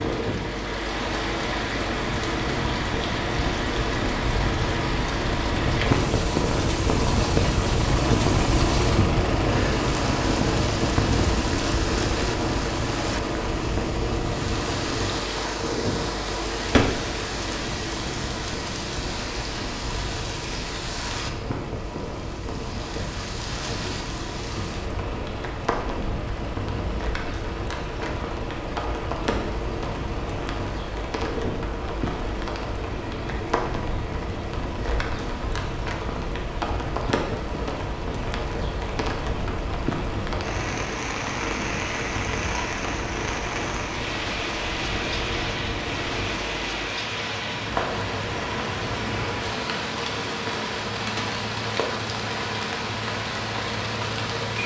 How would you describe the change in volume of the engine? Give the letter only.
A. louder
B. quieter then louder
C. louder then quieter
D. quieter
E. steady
D.